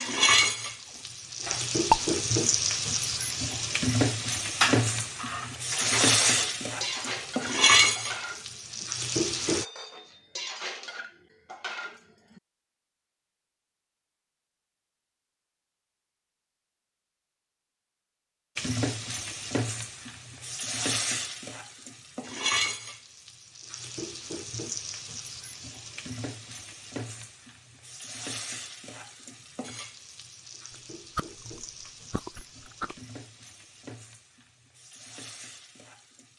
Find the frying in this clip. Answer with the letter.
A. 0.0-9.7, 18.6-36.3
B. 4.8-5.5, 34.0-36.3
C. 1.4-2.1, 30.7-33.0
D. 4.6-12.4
A.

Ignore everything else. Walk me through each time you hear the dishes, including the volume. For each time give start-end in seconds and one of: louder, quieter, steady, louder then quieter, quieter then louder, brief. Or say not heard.
4.6-12.4 quieter.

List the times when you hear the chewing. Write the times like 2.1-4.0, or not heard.
1.4-2.1, 30.7-33.0.